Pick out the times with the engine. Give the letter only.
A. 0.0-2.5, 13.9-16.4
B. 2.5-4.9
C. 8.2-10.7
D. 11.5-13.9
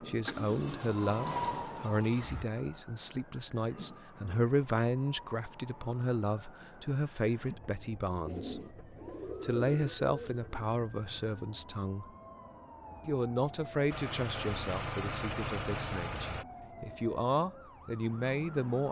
A.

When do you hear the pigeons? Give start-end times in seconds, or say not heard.
8.2-10.7.